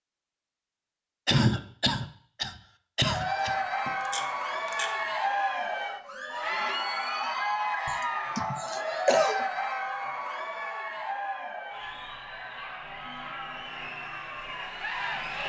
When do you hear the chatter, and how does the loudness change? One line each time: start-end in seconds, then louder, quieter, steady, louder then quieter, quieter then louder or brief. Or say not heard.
3.0-15.4 quieter.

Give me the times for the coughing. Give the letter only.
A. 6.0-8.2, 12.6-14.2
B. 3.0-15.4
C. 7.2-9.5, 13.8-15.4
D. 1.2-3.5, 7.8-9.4
D.